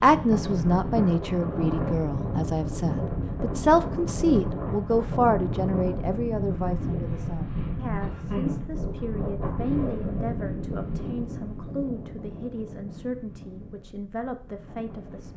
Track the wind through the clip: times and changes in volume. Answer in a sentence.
The wind can be heard from 0.0 to 15.3 s, getting quieter.